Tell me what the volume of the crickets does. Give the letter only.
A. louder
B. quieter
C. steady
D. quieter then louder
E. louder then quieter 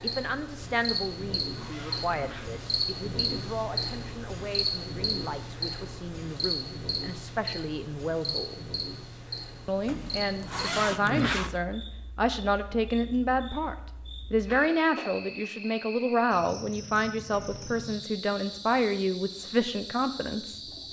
B.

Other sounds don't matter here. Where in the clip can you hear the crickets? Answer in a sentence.
The crickets can be heard from 0.0 to 20.8 s.